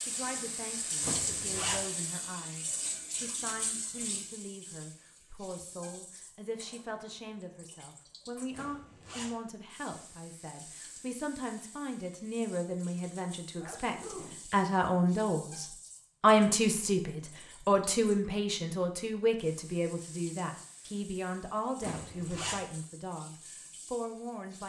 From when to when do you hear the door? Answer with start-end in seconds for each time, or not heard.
not heard.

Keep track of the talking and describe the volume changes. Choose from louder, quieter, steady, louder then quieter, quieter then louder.
louder then quieter.